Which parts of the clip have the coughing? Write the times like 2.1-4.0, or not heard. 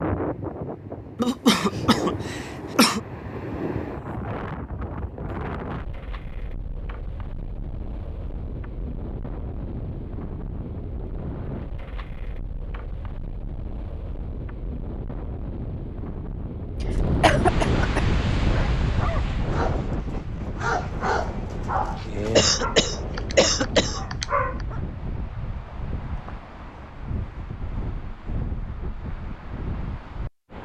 1.1-3.0, 17.2-18.0, 22.4-24.0.